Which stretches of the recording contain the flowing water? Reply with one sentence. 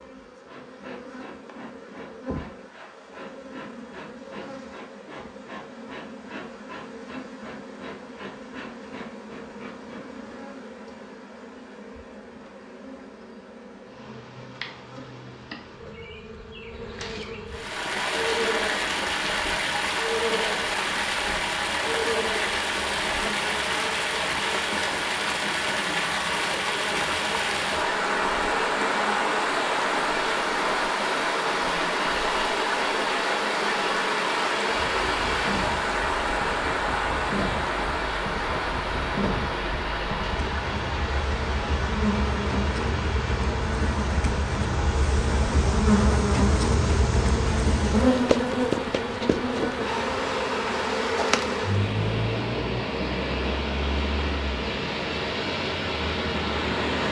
You can hear the flowing water from 17.4 to 57.0 s.